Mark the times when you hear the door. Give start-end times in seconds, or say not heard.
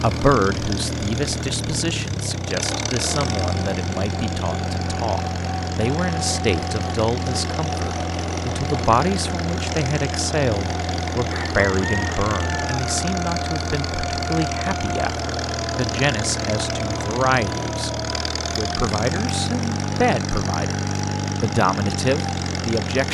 not heard.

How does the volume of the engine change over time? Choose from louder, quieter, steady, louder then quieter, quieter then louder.
steady.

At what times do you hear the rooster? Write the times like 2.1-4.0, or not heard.
11.3-12.8.